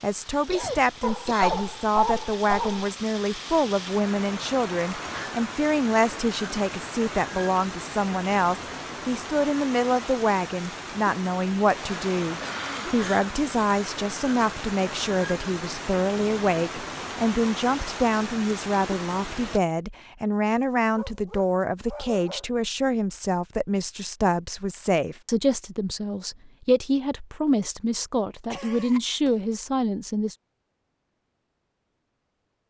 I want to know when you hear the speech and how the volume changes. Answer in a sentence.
You can hear the speech from 0.0 to 30.4 s, at a steady volume.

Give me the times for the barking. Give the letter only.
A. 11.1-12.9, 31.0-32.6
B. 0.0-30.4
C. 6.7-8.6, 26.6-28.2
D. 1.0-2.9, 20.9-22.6
D.